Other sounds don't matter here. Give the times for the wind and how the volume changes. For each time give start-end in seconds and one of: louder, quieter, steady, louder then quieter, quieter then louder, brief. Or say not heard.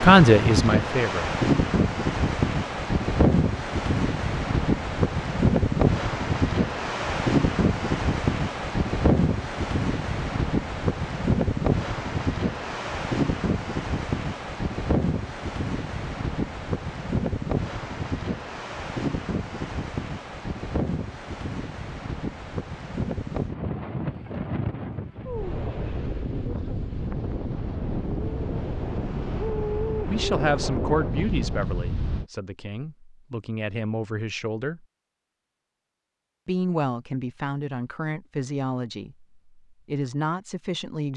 0.0-32.2 quieter.